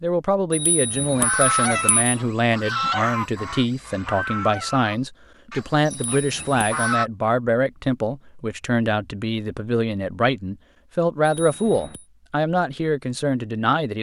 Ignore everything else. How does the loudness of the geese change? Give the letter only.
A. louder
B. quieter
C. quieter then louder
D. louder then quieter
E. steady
B.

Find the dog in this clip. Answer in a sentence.
The dog can't be heard in this clip.